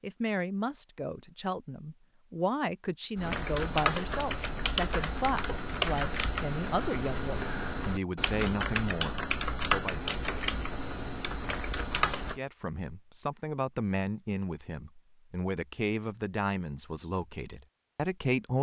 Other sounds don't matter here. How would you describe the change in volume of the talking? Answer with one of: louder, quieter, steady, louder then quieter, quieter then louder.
steady.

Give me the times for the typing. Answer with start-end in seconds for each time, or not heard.
3.1-12.4.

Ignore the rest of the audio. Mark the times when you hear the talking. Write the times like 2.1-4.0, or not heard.
0.0-9.9, 12.2-18.5.